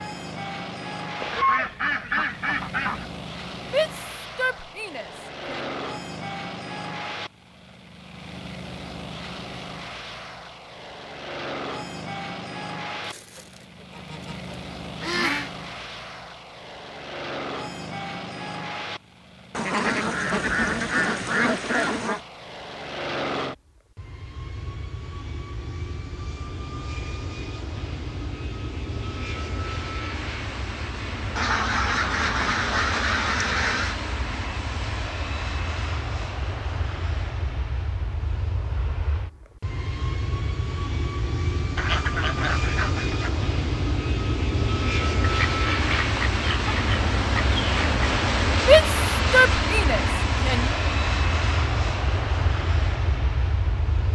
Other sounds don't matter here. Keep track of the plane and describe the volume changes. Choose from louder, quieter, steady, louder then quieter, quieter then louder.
louder.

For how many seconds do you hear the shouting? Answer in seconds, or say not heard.
4 s.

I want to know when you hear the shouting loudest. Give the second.
49 s.